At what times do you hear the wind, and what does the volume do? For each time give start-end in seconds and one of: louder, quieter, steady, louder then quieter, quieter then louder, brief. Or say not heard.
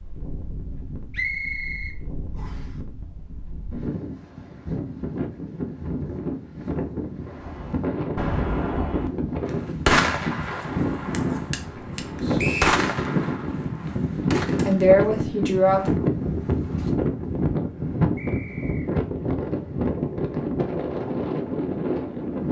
0.0-22.4 louder.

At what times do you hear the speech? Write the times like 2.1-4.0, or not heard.
11.7-12.4, 14.7-15.9.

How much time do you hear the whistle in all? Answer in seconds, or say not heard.
3 s.